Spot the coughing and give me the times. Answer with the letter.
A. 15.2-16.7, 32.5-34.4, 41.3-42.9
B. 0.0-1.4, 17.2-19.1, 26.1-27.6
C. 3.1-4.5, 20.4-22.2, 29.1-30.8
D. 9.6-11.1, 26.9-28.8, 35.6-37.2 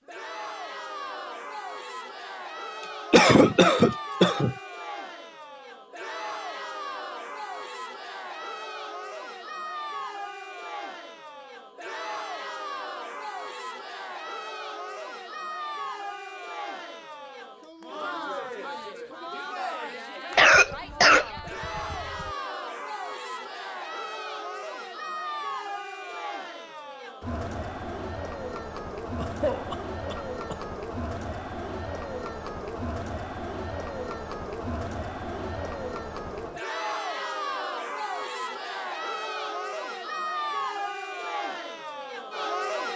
C.